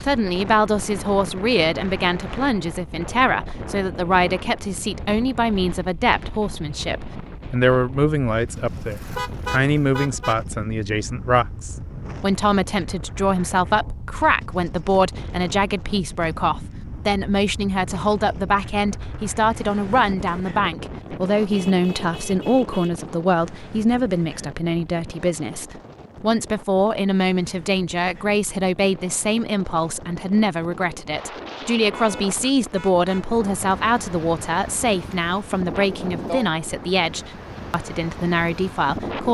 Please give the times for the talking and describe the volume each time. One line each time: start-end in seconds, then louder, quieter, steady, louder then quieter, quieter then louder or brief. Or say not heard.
0.0-39.3 steady.